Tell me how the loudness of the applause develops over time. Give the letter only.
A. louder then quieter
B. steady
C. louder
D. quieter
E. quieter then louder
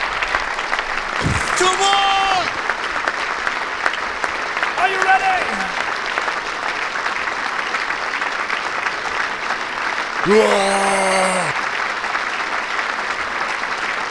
B.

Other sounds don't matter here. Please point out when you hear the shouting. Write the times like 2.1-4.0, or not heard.
1.2-2.5, 4.8-5.8, 10.2-11.6.